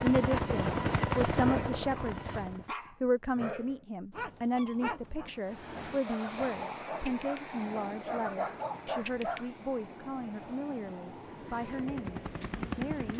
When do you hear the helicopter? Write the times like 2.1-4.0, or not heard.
0.0-2.6, 11.2-13.1.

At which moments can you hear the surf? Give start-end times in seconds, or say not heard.
5.3-13.1.